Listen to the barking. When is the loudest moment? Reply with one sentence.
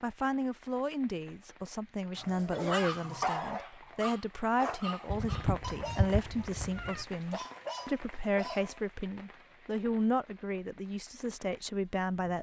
The loudest moment of the barking is at 3 seconds.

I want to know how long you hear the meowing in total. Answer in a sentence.
The meowing can be heard for 2 seconds in total.